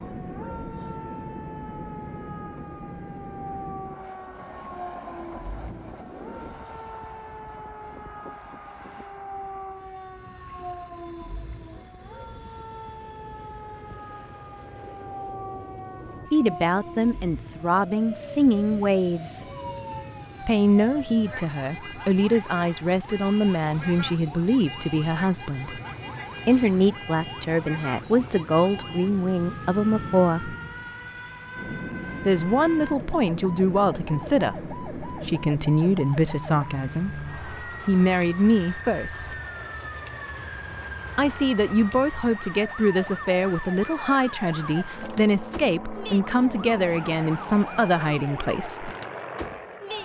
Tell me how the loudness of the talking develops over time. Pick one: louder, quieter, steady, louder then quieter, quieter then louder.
steady.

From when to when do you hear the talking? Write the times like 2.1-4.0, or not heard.
16.3-19.4, 20.4-25.8, 26.4-30.6, 32.2-39.4, 41.1-48.9.